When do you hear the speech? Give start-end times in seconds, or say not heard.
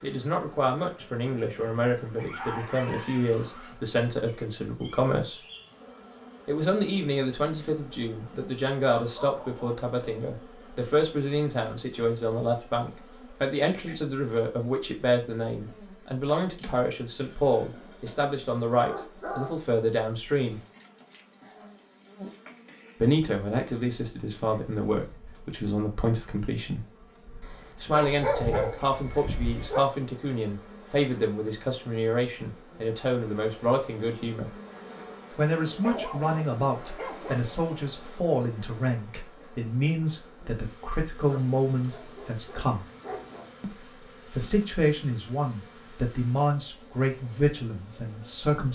0.0-5.4, 6.5-20.6, 23.0-26.8, 27.8-34.5, 35.3-42.9, 43.6-48.7.